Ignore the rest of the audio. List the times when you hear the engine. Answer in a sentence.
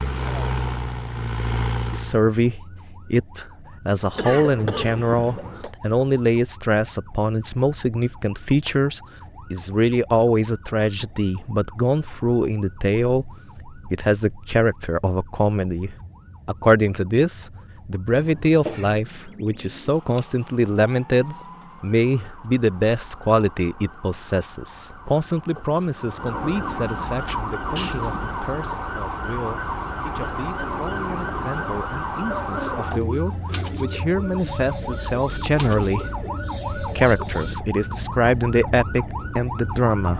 The engine can be heard from 0.0 to 2.2 s.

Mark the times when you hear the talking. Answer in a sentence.
The talking can be heard from 1.9 to 40.1 s.